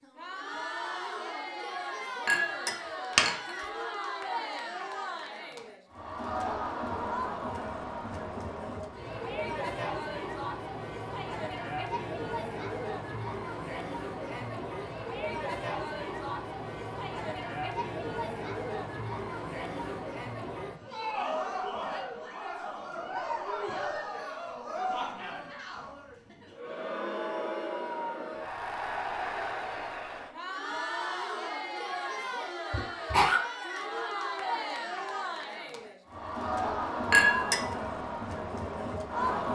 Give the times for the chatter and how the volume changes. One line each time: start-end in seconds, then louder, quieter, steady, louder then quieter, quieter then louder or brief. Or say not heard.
0.0-39.5 steady.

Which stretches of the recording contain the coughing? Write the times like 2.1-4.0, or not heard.
32.7-33.4.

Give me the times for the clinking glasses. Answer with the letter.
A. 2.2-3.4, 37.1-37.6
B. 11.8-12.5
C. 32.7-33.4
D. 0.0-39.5
A.